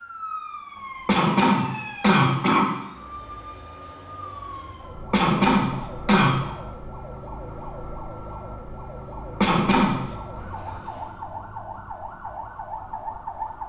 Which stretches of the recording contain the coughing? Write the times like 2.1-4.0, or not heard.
1.1-2.7, 5.1-6.3, 9.4-10.0.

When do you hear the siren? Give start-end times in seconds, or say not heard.
0.0-13.6.